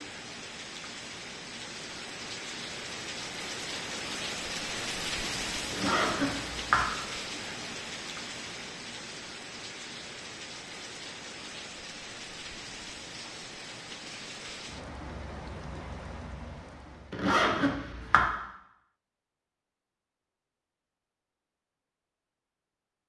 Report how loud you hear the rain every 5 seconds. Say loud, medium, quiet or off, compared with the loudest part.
loud, loud, medium, medium, off.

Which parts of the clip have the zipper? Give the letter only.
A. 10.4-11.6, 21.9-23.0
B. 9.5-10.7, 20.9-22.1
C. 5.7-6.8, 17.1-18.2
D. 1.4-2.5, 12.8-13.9
C.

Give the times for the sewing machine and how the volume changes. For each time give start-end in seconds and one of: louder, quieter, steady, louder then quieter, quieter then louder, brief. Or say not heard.
not heard.